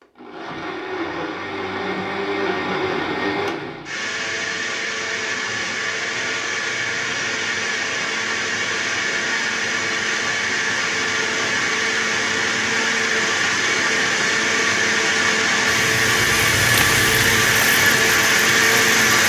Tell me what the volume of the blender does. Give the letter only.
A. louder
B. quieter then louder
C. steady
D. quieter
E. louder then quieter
A.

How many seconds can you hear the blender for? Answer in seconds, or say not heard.
19 s.